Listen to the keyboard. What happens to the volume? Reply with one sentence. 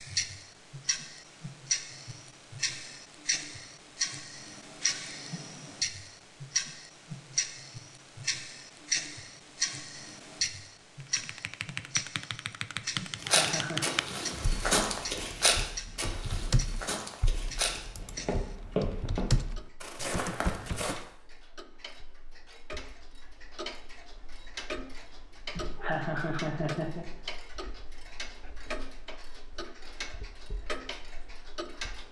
The volume of the keyboard goes down, then up.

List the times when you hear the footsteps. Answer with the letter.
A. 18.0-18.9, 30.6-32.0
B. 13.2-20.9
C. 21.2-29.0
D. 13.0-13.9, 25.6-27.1
B.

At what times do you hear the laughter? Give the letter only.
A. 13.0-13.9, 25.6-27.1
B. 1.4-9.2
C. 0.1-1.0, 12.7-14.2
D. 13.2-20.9
A.